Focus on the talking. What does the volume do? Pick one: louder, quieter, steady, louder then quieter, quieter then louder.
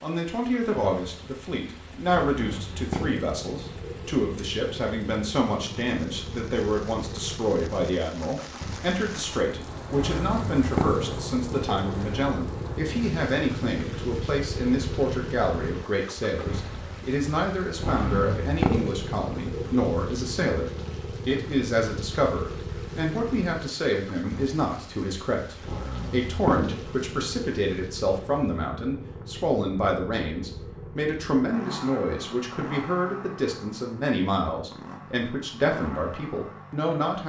steady.